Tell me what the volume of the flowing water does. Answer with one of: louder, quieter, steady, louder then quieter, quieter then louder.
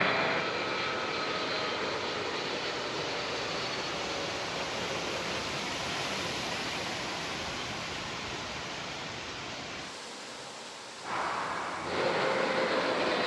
louder then quieter.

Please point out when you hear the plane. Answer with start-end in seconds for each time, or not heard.
0.0-5.5, 11.0-13.2.